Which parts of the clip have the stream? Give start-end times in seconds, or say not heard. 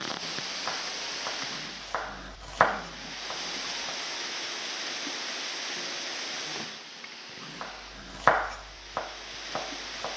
0.0-10.1.